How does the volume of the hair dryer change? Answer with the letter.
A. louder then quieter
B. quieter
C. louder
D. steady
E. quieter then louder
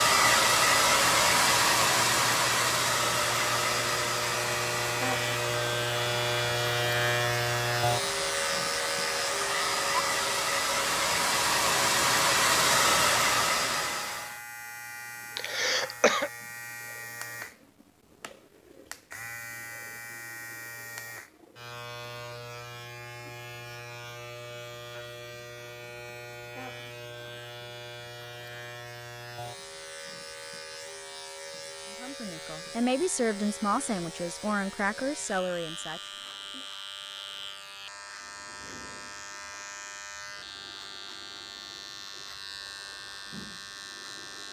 E.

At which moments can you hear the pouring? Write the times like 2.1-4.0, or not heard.
not heard.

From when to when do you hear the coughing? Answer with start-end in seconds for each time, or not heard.
15.3-16.3.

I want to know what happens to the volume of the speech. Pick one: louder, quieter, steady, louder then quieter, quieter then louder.
quieter.